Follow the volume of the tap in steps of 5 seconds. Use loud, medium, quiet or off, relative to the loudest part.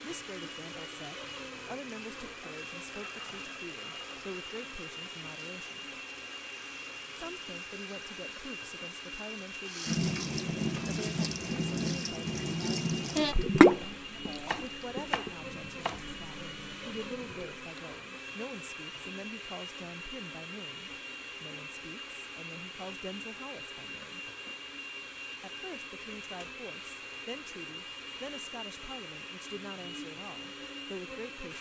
quiet, quiet, loud, quiet, off, off, off.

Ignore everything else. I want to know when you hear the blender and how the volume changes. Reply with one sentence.
You can hear the blender from 0.0 to 31.5 s, at a steady volume.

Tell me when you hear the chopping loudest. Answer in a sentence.
The volume of the chopping peaks at 15 seconds.